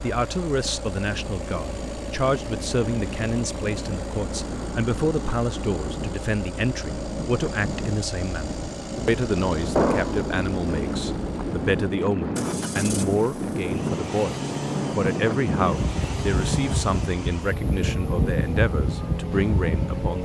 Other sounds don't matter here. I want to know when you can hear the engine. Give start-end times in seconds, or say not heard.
0.0-20.2.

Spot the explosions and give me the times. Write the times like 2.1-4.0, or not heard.
9.8-10.3.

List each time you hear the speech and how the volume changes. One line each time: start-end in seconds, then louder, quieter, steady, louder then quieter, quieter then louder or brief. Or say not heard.
0.0-20.2 steady.